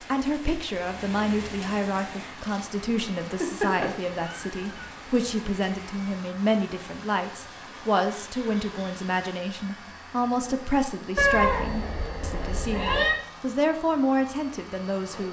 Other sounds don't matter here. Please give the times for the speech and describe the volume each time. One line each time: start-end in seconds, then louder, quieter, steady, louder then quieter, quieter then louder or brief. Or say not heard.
0.1-15.2 steady.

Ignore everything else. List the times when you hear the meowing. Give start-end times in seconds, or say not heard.
3.3-4.9, 11.2-13.2.